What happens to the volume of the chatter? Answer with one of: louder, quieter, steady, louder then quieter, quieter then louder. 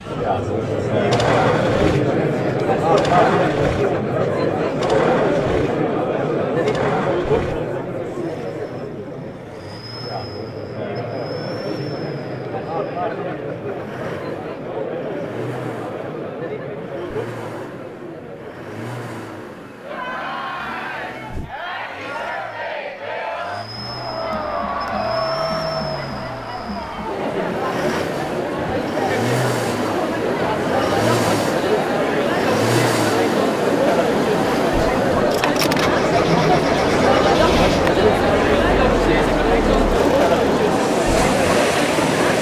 quieter then louder.